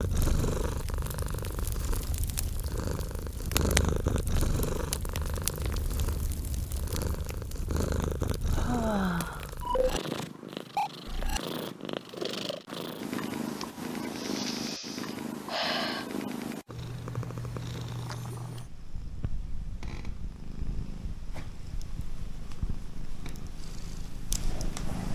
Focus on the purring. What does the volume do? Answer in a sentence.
The loudness of the purring goes down.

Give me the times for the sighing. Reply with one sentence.
The sighing can be heard from 8.5 to 9.5 s and from 13.4 to 16.1 s.